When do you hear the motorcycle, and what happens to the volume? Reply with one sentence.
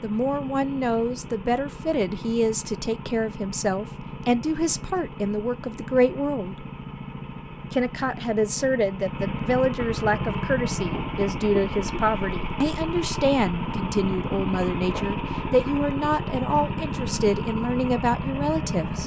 You can hear the motorcycle from 0.0 to 19.0 s, getting louder.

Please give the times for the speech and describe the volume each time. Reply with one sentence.
The speech can be heard from 0.0 to 6.6 s, at a steady volume; and from 7.7 to 19.0 s, at a steady volume.